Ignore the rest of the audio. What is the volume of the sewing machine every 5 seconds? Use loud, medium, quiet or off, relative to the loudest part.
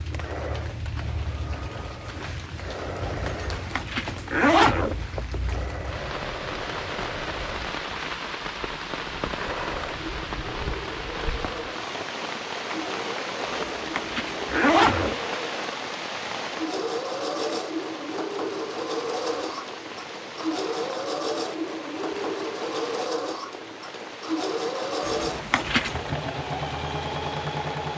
medium, medium, medium, loud, loud, loud.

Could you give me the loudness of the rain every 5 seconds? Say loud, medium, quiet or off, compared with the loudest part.
medium, loud, loud, loud, medium, medium.